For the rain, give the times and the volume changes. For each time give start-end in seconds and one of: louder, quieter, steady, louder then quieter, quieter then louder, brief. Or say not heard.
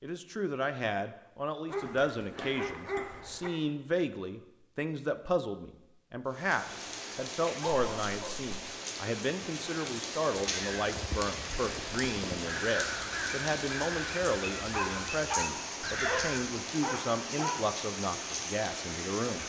6.2-19.4 steady.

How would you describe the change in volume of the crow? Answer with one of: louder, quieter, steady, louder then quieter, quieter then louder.
louder.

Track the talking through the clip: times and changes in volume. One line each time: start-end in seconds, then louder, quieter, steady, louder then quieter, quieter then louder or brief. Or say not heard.
0.0-19.4 steady.